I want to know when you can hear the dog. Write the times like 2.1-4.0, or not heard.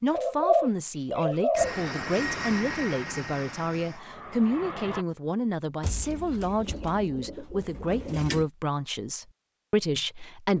not heard.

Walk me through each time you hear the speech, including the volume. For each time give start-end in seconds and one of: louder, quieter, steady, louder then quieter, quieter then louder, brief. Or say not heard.
0.0-10.5 steady.